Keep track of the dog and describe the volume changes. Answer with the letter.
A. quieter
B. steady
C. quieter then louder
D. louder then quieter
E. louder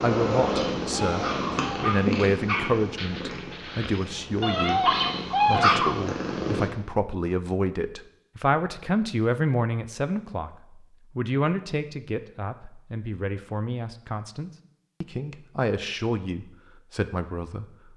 C.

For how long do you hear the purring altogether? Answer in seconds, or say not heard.
7 s.